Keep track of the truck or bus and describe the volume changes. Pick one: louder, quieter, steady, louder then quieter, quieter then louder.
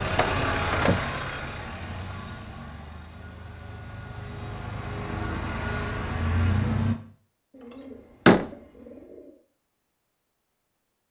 quieter then louder.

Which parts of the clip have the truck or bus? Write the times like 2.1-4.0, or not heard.
0.0-7.0.